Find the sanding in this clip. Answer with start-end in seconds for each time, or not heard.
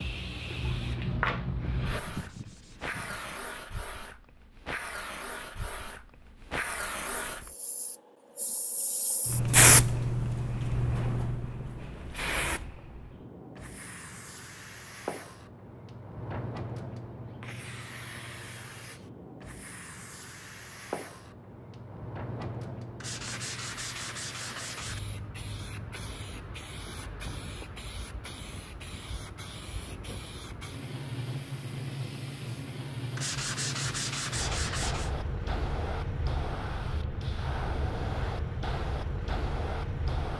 1.9-3.5, 23.0-25.0, 33.1-35.1.